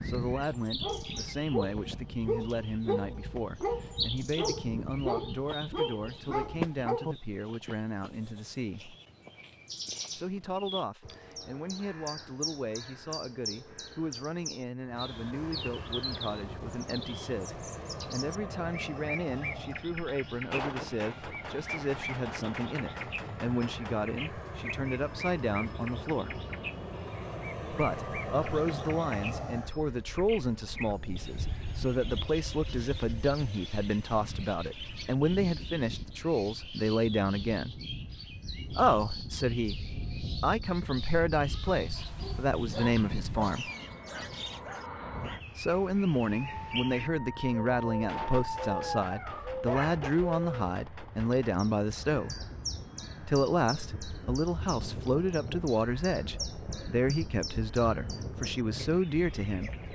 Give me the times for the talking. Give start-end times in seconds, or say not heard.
0.0-8.9, 10.2-26.4, 27.7-37.8, 38.7-43.7, 45.5-52.3, 53.2-59.8.